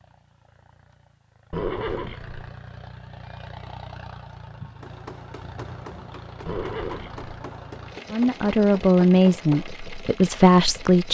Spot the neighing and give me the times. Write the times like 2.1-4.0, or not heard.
1.5-2.5, 6.5-7.2.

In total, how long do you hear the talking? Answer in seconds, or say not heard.
3 s.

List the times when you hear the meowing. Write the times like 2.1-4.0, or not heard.
not heard.